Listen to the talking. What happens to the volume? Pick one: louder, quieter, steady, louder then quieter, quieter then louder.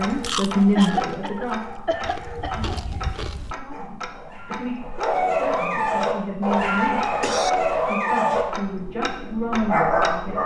quieter then louder.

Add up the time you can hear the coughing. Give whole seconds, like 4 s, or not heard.
3 s.